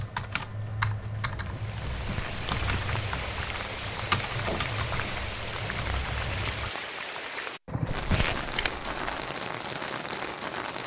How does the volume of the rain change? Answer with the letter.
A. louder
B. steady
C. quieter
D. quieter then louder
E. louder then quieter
B.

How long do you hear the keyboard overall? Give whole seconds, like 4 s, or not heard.
7 s.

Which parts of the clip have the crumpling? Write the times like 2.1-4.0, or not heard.
1.9-2.5, 7.8-9.3.